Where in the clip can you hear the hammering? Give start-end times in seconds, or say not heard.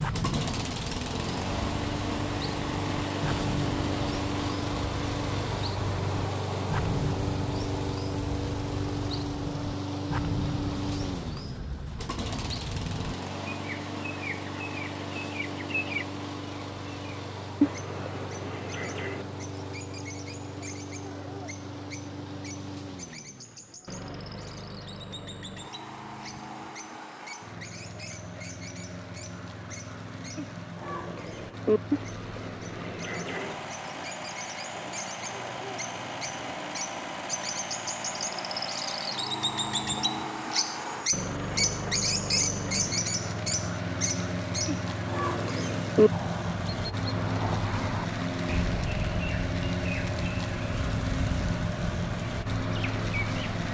not heard.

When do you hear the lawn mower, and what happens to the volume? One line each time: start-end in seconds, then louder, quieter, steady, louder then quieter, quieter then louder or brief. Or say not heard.
0.0-53.6 quieter then louder.